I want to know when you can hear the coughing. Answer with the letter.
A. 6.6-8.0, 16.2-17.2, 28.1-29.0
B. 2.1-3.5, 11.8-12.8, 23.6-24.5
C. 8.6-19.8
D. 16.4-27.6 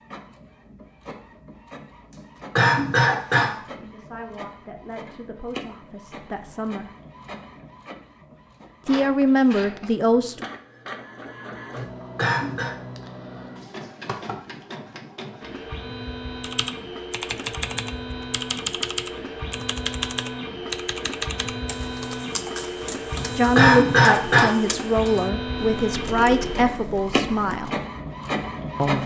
B.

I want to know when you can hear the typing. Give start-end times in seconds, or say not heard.
16.4-27.6.